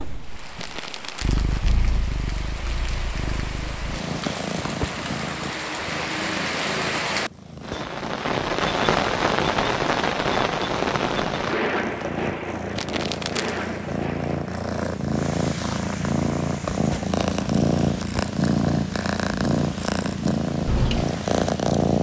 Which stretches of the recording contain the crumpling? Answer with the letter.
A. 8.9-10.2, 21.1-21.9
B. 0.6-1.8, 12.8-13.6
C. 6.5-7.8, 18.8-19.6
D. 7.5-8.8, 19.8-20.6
B.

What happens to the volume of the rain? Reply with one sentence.
The volume of the rain goes up, then down.